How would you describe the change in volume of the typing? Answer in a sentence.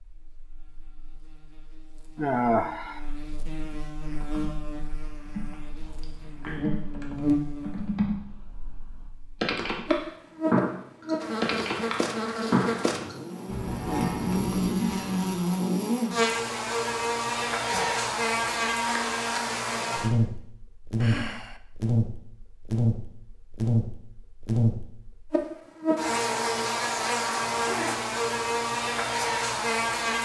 The loudness of the typing goes up.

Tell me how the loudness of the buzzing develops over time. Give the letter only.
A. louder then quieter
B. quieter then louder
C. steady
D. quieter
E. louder
E.